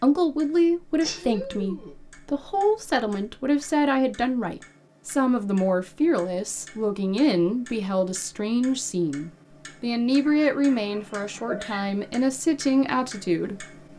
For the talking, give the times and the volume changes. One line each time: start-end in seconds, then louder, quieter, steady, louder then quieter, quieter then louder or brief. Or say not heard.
0.0-13.7 steady.